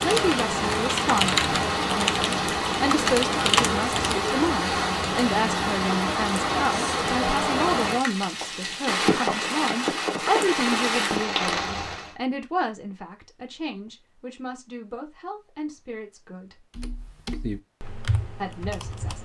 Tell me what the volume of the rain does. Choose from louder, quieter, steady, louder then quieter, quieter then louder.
steady.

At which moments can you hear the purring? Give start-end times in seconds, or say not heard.
not heard.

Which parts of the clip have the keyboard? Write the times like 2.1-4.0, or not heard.
0.0-4.2, 16.8-19.2.